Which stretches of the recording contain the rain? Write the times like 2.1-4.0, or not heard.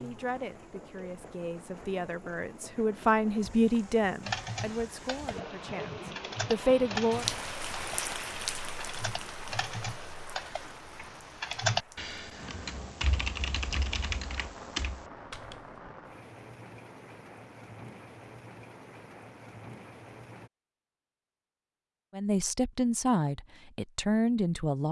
0.0-20.5.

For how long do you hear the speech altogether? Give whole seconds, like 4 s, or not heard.
10 s.